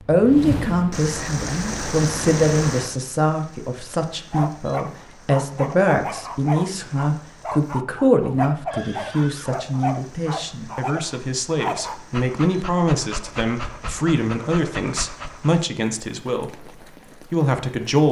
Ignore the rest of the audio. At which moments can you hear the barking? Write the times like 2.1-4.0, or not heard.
4.3-15.5.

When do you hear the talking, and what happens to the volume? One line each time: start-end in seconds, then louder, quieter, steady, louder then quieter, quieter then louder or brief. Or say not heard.
0.0-18.0 steady.